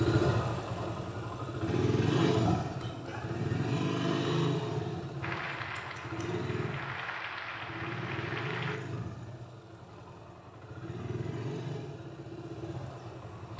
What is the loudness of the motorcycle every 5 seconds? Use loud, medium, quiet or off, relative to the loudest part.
loud, medium, medium.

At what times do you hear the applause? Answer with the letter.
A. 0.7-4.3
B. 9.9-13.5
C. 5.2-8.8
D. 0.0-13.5
C.